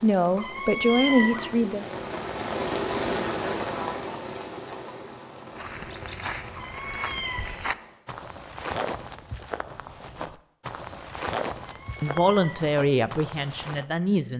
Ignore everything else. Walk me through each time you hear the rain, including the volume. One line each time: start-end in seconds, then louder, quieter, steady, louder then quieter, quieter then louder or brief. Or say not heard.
0.0-8.1 louder then quieter.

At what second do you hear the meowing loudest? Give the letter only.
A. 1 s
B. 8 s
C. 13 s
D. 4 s
A.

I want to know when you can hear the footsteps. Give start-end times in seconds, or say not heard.
5.5-13.8.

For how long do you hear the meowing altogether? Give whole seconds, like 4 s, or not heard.
3 s.